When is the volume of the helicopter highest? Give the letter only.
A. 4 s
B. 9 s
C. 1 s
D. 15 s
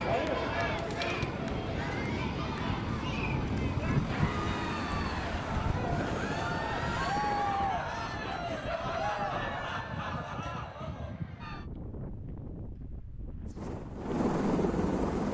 D.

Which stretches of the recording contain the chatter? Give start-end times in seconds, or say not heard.
0.0-11.7.